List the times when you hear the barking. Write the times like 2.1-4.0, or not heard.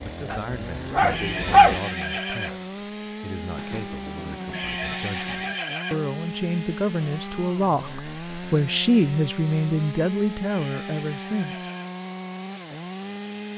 0.1-1.8.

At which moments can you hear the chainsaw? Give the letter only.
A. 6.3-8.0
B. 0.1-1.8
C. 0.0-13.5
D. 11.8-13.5
C.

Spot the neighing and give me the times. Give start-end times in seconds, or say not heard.
1.1-2.6, 4.5-6.1, 10.4-11.9.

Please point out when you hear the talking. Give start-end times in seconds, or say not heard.
0.0-11.7.